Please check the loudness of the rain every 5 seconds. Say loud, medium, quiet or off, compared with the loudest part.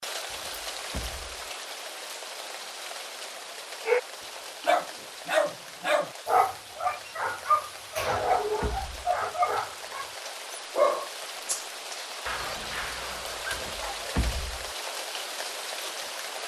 loud, medium, loud, loud.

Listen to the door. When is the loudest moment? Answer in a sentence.
The loudest moment of the door is at 14 seconds.